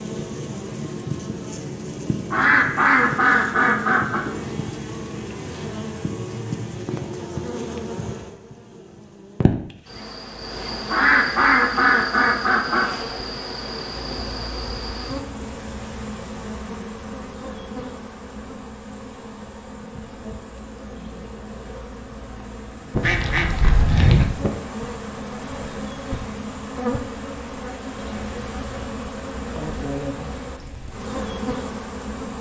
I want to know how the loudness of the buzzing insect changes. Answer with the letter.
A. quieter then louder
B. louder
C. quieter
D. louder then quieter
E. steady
E.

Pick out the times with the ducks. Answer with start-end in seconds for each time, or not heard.
2.3-4.2, 10.8-12.9, 23.0-24.2.